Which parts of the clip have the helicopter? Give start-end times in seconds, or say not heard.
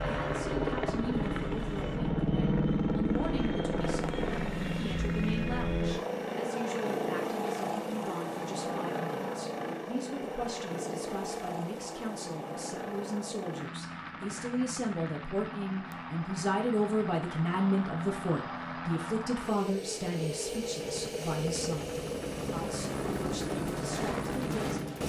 0.0-25.0.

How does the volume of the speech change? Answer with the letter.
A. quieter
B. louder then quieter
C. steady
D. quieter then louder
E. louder
B.